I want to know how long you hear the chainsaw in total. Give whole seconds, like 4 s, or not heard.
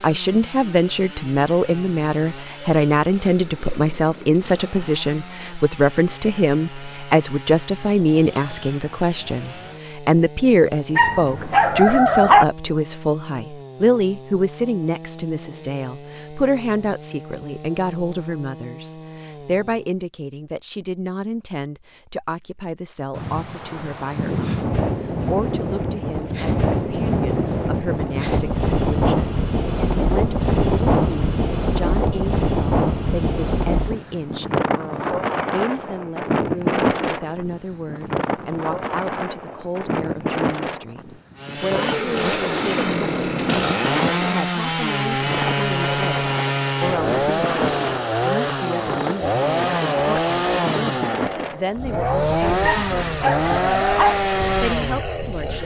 34 s.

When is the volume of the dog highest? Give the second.
12 s.